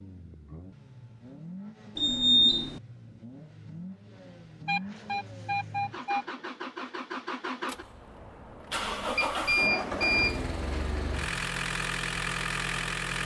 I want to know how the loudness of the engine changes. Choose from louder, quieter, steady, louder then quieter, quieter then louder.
louder.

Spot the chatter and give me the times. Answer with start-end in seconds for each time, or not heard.
not heard.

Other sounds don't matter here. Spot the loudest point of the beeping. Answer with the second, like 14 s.
2 s.